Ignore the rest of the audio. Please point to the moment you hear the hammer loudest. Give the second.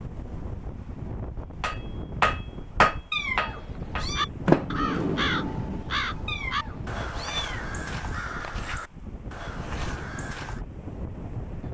3 s.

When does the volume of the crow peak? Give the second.
5 s.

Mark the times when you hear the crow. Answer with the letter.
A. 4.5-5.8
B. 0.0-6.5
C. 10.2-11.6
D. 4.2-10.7
D.